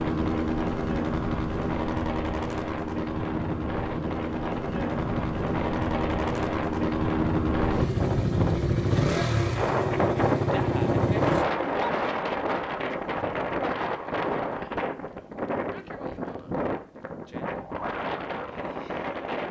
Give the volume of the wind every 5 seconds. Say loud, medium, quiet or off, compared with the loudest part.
medium, loud, loud, medium.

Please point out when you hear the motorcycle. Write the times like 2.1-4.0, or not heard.
0.0-11.4.